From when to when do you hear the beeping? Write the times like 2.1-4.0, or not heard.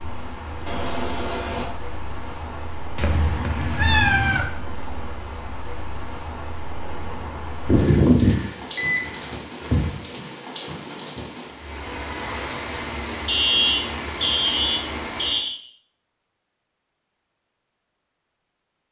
0.7-1.6, 7.7-9.9, 13.2-15.6.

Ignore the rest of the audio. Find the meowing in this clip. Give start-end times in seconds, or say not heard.
3.0-4.5.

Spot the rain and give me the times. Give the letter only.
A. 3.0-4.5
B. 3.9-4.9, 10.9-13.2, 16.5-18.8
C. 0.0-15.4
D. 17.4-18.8
C.